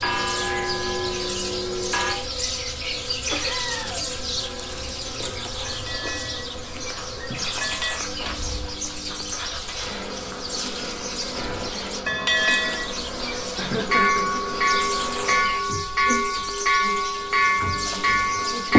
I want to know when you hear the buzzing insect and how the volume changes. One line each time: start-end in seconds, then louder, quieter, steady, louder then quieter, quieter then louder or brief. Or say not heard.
0.0-18.7 steady.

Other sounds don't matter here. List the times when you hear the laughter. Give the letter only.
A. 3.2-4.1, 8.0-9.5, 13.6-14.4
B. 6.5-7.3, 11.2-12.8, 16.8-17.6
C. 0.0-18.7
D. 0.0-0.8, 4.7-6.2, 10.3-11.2
A.